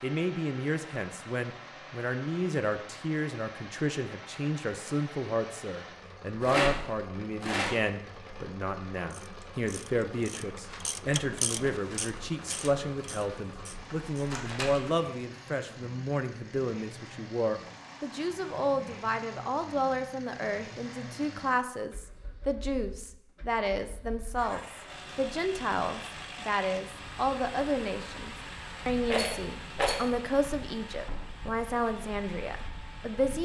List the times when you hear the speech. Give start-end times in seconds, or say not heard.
0.0-33.4.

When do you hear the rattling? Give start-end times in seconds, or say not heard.
6.4-7.8, 13.7-14.9, 29.1-30.1.